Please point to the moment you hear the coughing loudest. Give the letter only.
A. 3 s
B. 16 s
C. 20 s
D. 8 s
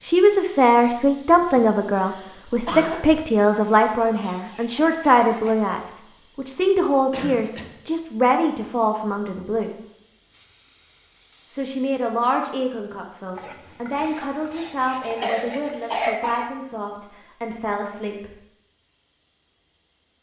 B.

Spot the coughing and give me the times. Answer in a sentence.
You can hear the coughing from 1.6 to 3.0 s, from 7.1 to 7.8 s and from 15.2 to 16.4 s.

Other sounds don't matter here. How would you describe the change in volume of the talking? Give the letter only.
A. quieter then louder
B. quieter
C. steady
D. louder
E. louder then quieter
B.